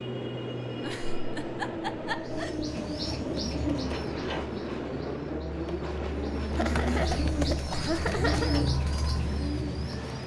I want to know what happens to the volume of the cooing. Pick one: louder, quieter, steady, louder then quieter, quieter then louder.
quieter then louder.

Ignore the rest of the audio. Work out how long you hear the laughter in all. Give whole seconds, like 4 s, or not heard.
4 s.